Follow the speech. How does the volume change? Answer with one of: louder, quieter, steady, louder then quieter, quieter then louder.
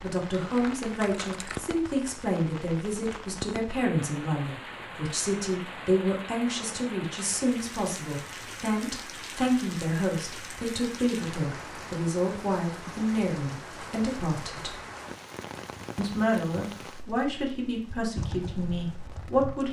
steady.